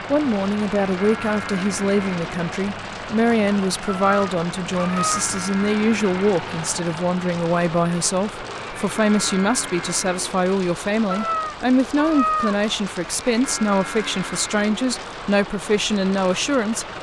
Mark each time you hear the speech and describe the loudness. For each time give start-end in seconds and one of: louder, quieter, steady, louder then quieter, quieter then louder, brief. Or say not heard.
0.1-16.9 steady.